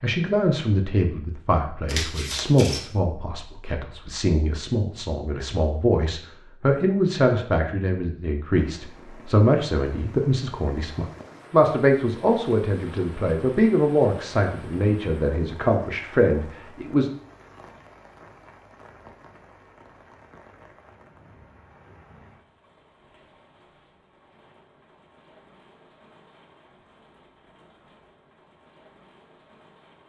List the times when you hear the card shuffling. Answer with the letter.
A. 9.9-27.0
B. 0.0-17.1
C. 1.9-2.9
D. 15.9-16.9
C.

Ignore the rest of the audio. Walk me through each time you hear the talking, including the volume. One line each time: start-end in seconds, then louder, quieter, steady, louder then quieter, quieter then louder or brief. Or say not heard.
0.0-17.1 steady.